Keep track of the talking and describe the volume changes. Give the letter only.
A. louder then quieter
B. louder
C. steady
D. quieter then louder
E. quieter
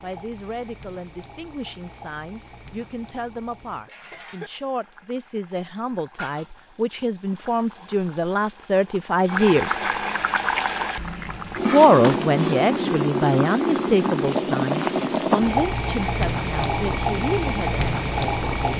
A.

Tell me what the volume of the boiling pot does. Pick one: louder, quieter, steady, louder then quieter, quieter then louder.
louder.